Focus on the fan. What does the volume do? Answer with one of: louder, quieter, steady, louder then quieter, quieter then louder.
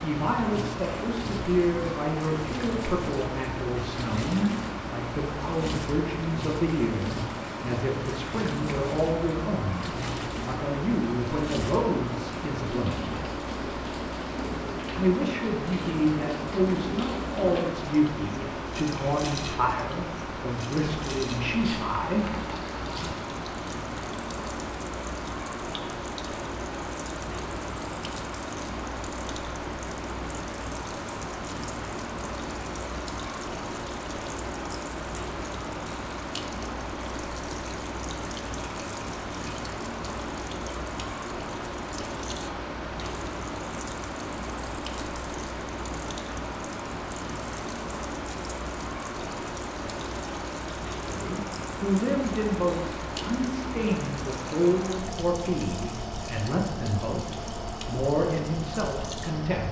steady.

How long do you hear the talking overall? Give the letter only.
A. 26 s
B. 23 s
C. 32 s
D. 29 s
D.